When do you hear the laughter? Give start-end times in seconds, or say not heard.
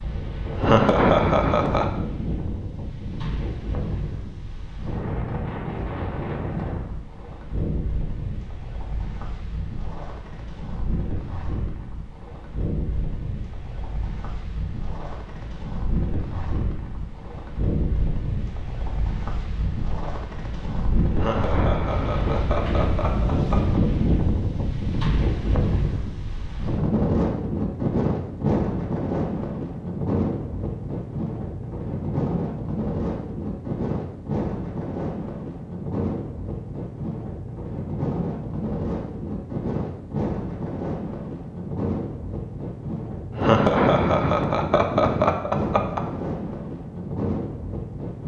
0.6-1.9, 21.1-23.8, 43.4-46.0.